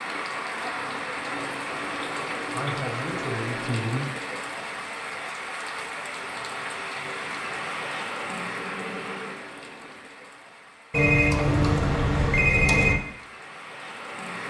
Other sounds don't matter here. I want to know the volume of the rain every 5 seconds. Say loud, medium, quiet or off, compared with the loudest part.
loud, loud, medium.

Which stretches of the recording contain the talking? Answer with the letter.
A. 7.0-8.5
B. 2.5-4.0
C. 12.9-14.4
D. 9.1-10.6
B.